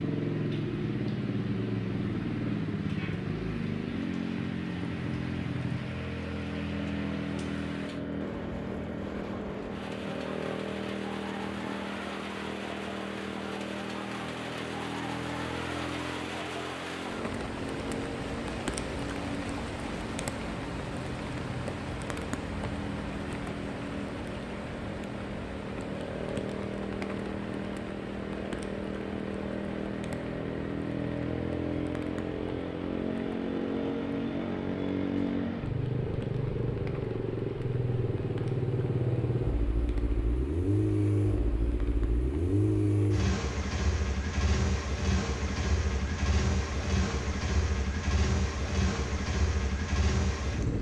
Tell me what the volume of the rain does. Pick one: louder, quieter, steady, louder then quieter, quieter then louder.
louder then quieter.